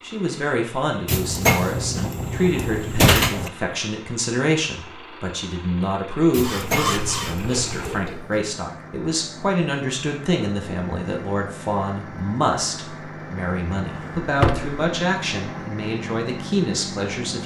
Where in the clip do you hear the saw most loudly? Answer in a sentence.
The volume of the saw peaks at 7 seconds.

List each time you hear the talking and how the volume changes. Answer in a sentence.
The talking can be heard from 0.0 to 17.4 s, at a steady volume.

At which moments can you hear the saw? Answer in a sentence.
You can hear the saw from 6.4 to 8.4 s.